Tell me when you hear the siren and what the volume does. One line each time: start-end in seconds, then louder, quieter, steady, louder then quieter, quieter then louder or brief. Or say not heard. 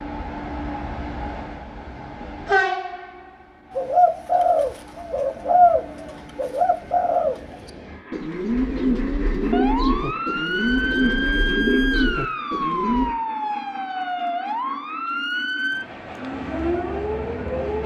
9.4-17.8 steady.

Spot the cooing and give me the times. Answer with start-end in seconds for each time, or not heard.
3.7-13.2.